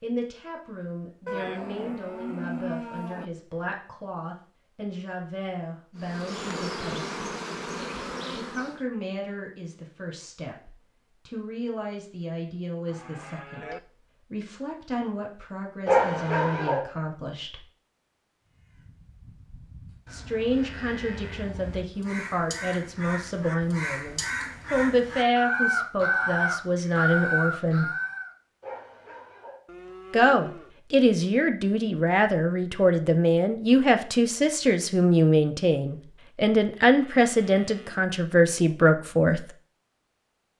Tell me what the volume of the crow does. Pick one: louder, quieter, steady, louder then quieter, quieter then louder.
louder.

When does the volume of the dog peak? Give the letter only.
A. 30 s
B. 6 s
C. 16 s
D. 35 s
C.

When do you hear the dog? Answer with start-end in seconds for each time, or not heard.
15.8-16.8, 28.6-29.6.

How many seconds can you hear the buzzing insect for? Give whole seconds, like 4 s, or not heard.
3 s.